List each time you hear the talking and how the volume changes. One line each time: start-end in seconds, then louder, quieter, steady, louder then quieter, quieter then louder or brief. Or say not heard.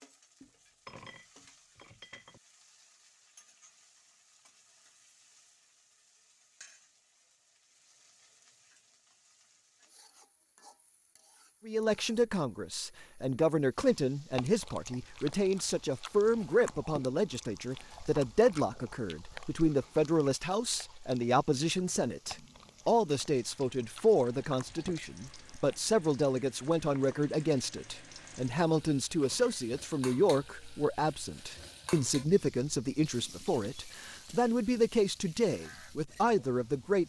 11.7-37.0 steady.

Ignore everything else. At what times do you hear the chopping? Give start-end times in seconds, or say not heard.
not heard.